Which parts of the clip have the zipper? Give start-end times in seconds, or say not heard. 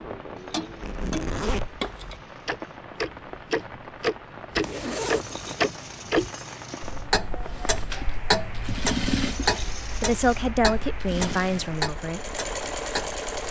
0.8-1.8, 4.6-5.5, 11.2-11.8.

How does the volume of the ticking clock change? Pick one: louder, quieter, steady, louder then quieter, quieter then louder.
louder then quieter.